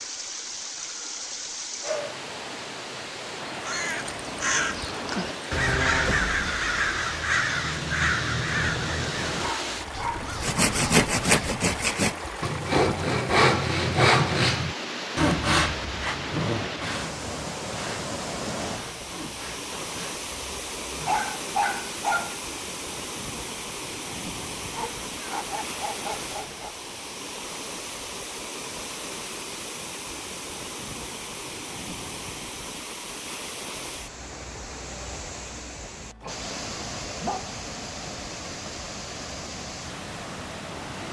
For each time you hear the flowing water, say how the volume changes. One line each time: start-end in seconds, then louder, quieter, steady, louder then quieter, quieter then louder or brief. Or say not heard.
0.0-41.0 steady.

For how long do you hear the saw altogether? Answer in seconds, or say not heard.
11 s.